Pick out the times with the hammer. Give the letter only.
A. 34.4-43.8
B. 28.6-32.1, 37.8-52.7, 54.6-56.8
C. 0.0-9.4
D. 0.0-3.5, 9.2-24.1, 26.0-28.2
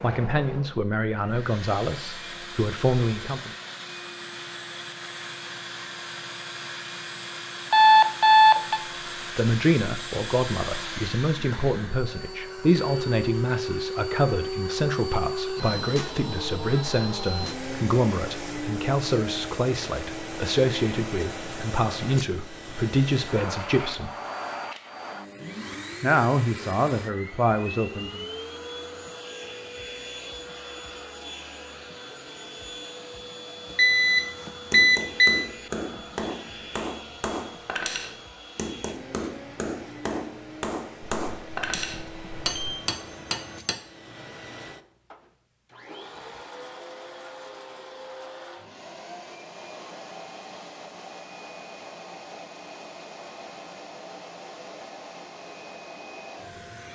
A.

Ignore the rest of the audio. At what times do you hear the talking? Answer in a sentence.
You can hear the talking from 0.0 to 3.5 s, from 9.2 to 24.1 s and from 26.0 to 28.2 s.